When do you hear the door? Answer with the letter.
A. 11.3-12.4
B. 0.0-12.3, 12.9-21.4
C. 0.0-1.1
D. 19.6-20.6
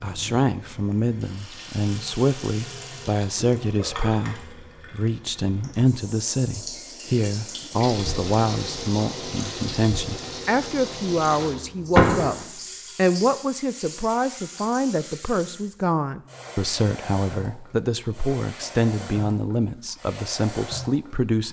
A.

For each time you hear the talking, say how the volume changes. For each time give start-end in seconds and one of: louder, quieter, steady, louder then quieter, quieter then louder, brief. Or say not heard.
0.0-12.3 steady
12.9-21.4 steady.